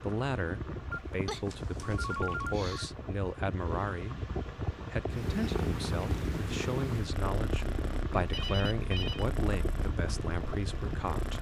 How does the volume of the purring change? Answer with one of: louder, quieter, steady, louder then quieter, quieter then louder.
quieter.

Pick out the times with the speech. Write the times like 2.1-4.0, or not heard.
0.0-4.2, 4.9-11.3.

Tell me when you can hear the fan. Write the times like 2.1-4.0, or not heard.
0.0-11.3.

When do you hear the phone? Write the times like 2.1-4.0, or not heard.
0.9-2.9, 8.3-9.3.